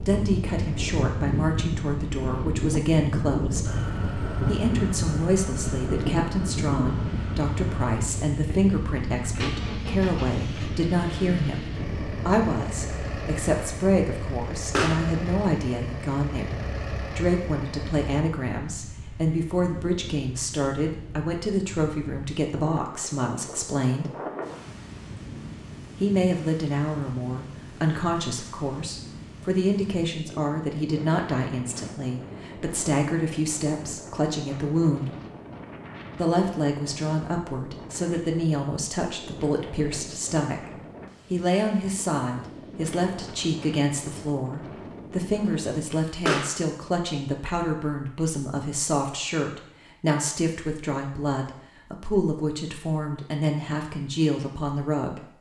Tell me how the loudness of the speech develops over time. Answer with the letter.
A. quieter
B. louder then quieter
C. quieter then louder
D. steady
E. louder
D.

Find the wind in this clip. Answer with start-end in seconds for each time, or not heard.
0.0-45.9.